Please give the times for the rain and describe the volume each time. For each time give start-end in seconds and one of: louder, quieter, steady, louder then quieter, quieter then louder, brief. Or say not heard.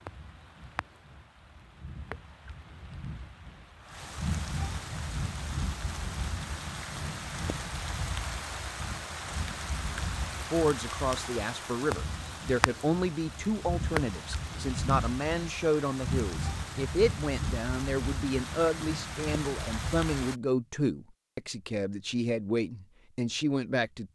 0.0-20.4 louder.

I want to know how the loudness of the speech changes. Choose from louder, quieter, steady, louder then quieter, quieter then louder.
steady.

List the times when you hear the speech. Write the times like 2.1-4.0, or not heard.
10.4-24.0.